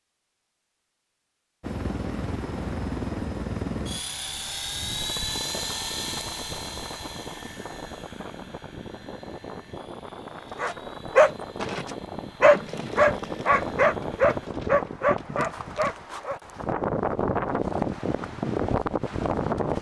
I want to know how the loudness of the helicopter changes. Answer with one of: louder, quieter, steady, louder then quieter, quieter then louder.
quieter.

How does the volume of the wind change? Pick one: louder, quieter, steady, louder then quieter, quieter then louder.
louder.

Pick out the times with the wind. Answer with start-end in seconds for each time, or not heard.
4.7-19.7.